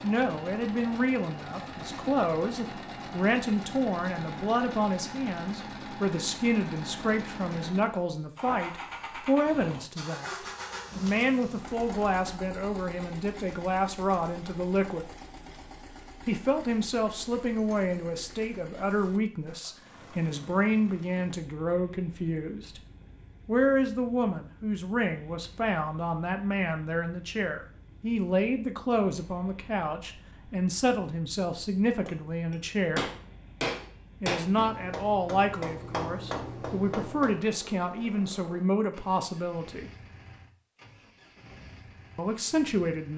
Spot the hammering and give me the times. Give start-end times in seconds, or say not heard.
32.0-37.5.